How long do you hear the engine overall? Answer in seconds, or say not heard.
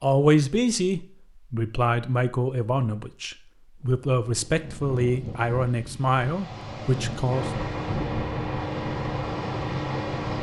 3 s.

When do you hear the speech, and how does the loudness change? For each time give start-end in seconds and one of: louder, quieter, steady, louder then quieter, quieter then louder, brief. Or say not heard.
0.0-7.5 steady.